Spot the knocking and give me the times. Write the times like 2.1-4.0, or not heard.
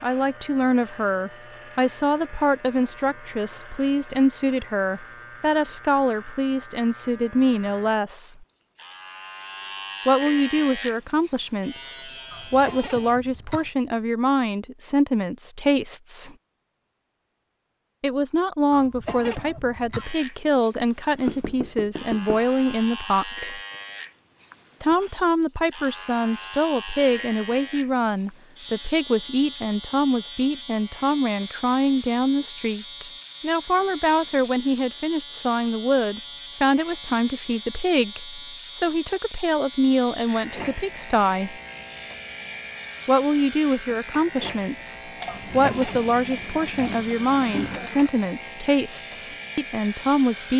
21.2-22.4.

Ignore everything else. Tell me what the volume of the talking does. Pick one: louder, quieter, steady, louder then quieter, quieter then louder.
steady.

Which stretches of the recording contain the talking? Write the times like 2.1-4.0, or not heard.
0.0-8.4, 10.1-16.4, 18.0-23.6, 24.8-41.6, 43.0-50.5.